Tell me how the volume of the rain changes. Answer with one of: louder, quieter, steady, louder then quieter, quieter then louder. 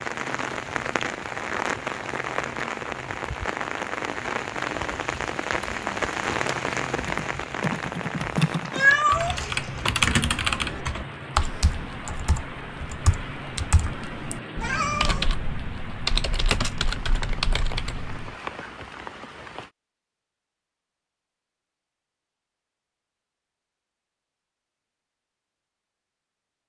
quieter.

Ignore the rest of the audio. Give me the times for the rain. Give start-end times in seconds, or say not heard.
0.0-19.7.